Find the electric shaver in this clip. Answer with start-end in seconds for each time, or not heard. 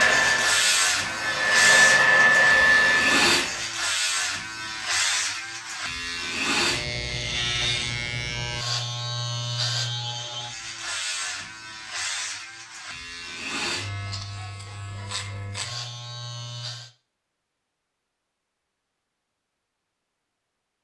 0.0-16.9.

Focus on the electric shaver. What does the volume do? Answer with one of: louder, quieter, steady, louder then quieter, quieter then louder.
quieter.